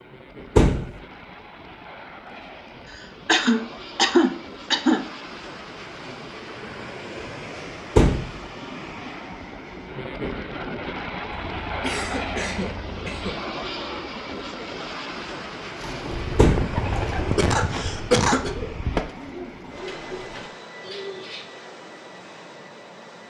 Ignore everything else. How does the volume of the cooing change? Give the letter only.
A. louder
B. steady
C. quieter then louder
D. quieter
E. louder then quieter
D.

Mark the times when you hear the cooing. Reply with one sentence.
You can hear the cooing from 15.8 to 21.5 s.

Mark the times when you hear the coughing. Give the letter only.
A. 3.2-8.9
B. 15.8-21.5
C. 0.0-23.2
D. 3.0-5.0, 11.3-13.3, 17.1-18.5
D.